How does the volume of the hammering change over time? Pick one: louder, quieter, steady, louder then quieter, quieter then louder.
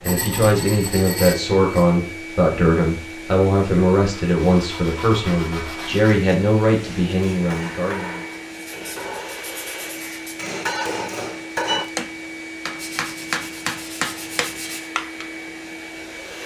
louder.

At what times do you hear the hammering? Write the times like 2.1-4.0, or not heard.
6.8-15.2.